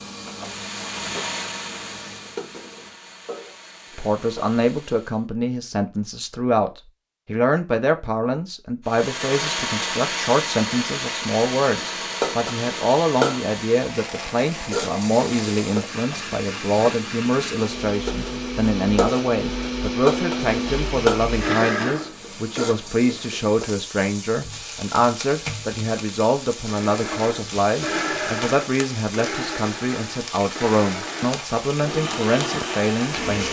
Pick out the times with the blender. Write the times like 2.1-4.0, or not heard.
0.4-5.2, 8.8-22.8, 26.6-33.4.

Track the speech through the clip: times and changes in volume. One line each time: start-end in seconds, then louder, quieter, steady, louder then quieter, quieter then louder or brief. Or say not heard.
4.0-33.4 steady.